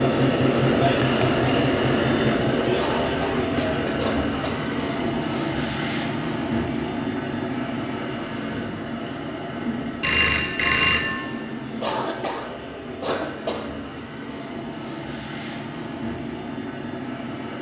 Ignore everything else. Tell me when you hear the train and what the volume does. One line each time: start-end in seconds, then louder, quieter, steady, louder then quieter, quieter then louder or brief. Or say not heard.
0.0-17.5 quieter.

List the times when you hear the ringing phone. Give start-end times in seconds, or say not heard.
10.0-11.3.